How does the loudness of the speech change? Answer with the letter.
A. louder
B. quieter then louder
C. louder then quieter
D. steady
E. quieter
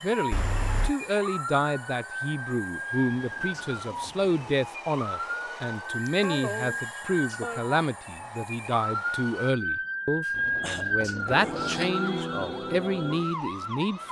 D.